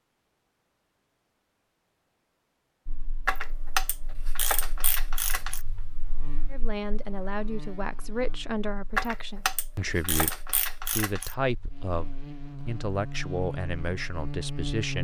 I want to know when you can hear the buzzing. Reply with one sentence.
You can hear the buzzing from 2.9 to 14.9 s.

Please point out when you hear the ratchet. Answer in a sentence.
You can hear the ratchet from 3.2 to 5.7 s and from 8.9 to 11.3 s.